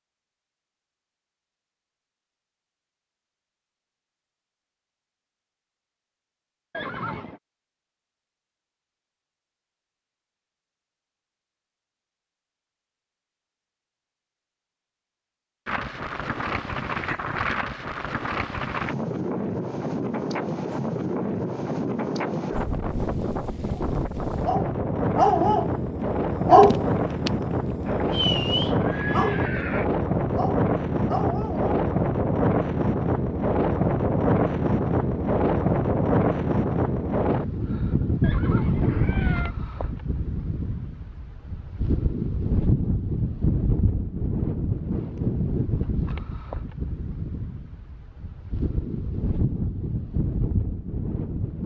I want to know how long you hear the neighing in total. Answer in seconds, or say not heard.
4 s.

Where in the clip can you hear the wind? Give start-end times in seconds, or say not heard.
15.7-51.6.